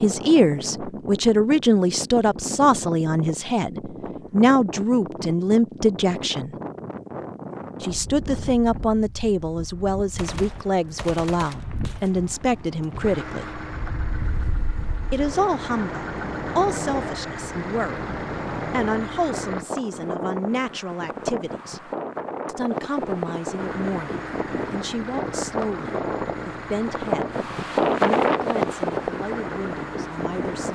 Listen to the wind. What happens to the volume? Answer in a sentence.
The loudness of the wind goes up.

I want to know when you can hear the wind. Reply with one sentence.
The wind can be heard from 0.0 to 30.6 s.